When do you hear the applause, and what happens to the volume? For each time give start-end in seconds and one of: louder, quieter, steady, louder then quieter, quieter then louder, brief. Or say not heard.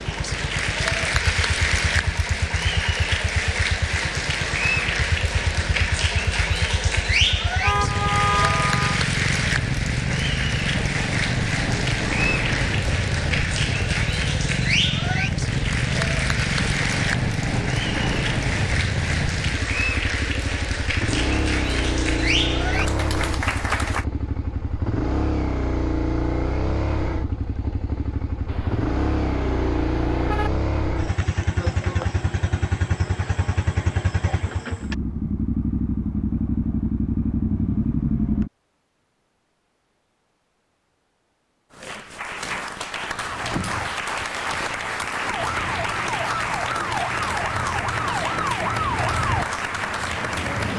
0.0-24.1 steady
41.7-50.7 steady.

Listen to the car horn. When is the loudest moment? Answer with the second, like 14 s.
8 s.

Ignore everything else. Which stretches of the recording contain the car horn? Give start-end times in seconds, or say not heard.
7.6-9.1, 28.4-30.5.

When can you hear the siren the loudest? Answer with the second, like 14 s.
49 s.